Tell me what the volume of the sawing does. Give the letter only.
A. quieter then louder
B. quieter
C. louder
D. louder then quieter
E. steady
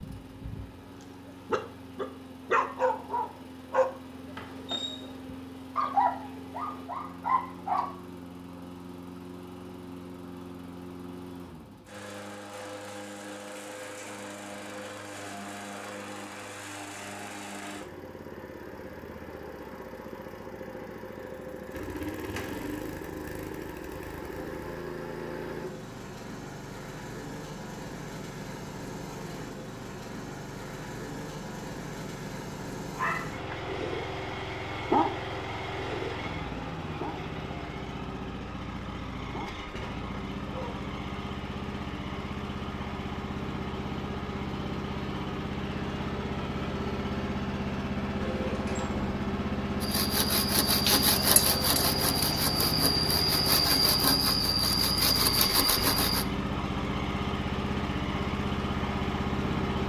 E.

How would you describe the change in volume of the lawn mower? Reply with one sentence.
The volume of the lawn mower goes up.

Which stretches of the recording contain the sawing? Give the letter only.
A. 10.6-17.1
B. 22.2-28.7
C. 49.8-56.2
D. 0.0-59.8
C.